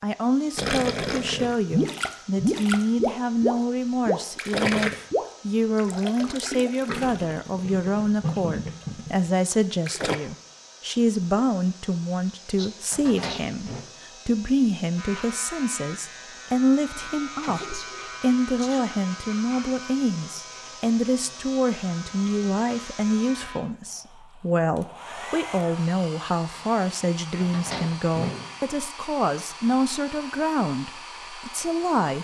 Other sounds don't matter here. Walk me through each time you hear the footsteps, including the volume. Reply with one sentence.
The footsteps can't be heard in this clip.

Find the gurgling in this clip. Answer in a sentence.
You can hear the gurgling from 0.6 to 10.2 s.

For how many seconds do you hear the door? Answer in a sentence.
You can hear the door for 2 seconds altogether.